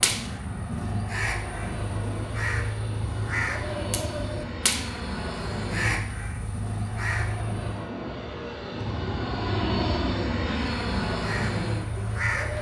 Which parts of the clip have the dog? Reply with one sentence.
You can't hear the dog here.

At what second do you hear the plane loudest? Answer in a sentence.
The volume of the plane peaks at 10 seconds.